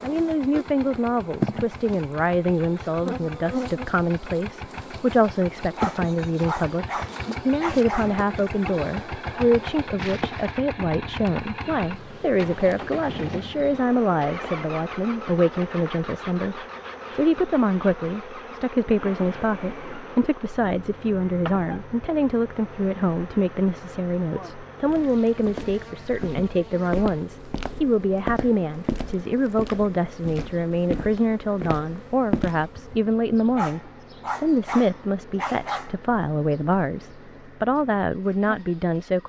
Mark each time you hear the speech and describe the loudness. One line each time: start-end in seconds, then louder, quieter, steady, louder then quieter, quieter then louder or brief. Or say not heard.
0.0-39.2 steady.